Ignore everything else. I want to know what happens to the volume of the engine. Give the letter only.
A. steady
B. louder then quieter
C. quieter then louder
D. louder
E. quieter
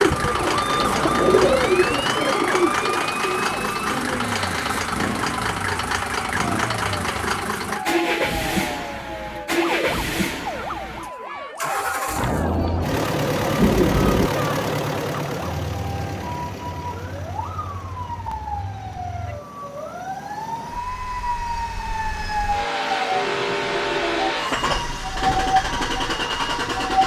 C.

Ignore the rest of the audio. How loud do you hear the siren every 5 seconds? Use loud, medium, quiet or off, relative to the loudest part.
loud, medium, medium, medium, loud, loud.